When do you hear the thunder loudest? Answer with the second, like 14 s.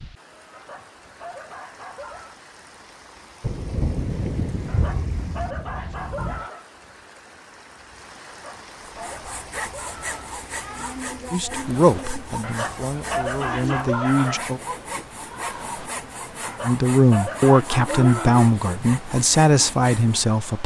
4 s.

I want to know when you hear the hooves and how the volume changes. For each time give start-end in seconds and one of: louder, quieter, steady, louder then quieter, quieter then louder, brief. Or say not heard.
not heard.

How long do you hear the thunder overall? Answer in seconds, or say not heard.
3 s.